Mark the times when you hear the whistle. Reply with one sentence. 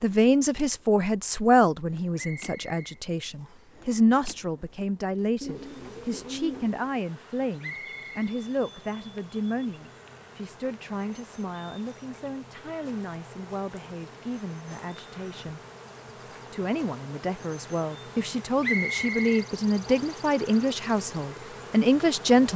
The whistle can be heard from 2.1 to 3.8 s, from 7.6 to 8.3 s and from 18.6 to 20.2 s.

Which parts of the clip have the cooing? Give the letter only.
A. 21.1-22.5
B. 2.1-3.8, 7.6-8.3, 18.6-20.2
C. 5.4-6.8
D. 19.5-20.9
C.